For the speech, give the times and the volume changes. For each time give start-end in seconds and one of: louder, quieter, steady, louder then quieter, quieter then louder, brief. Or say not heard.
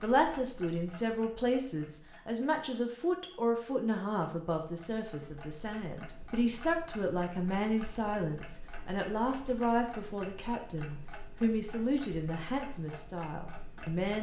0.0-14.1 steady.